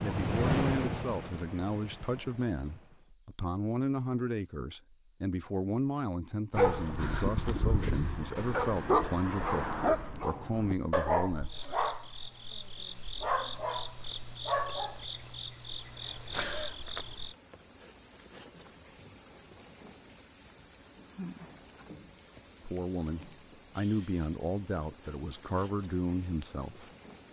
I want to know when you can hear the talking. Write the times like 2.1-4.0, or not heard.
0.0-11.8, 22.6-27.2.